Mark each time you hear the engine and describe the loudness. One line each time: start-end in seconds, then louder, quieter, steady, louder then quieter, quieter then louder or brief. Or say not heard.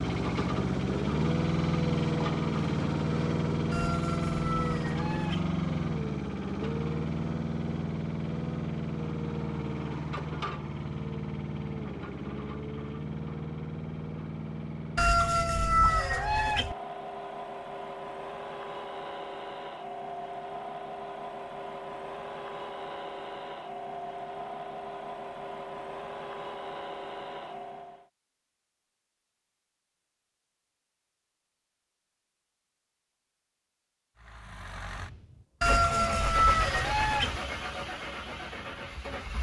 0.0-28.1 quieter
34.1-39.3 louder then quieter.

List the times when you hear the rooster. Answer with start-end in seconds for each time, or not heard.
3.7-5.5, 14.9-16.8, 35.6-37.4.